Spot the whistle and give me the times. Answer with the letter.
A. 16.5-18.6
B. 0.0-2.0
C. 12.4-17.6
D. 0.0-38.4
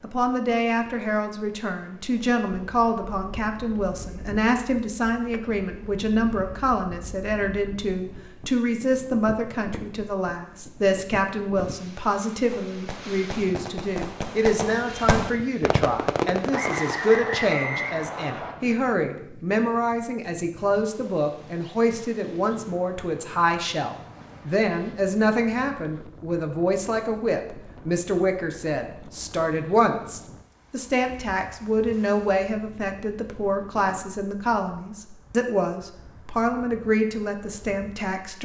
A.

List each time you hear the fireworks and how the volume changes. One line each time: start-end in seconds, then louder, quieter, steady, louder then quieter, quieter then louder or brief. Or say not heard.
12.4-17.6 louder then quieter.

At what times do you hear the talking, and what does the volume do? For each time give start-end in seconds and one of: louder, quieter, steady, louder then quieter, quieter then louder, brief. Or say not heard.
0.0-38.4 steady.